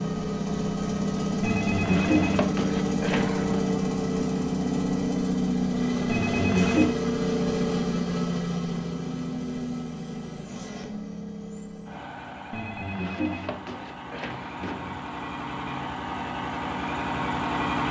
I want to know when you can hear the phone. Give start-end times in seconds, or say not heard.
1.4-3.6, 6.0-7.0, 12.5-15.1.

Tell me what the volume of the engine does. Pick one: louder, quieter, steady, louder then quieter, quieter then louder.
quieter then louder.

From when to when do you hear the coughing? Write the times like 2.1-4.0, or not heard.
not heard.